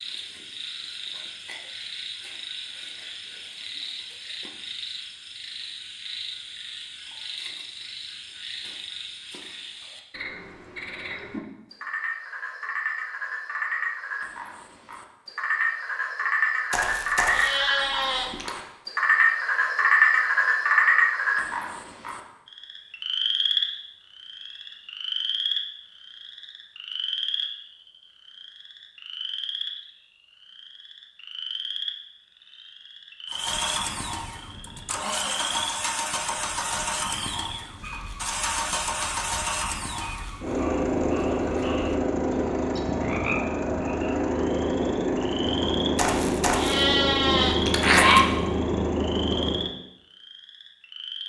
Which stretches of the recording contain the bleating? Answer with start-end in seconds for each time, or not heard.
16.7-18.6, 46.0-48.2.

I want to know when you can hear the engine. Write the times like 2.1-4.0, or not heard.
33.2-49.8.